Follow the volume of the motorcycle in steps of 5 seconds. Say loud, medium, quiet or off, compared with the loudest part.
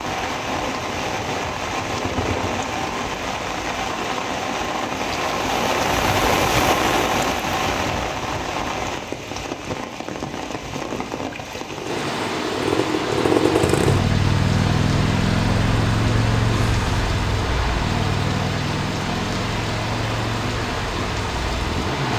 quiet, off, loud, loud, medium.